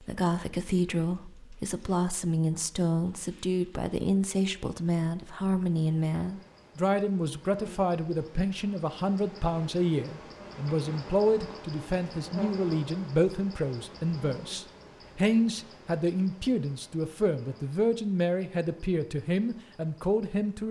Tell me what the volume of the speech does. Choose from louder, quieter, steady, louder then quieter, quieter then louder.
steady.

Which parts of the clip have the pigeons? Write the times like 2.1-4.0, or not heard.
not heard.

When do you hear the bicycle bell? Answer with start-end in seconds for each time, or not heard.
not heard.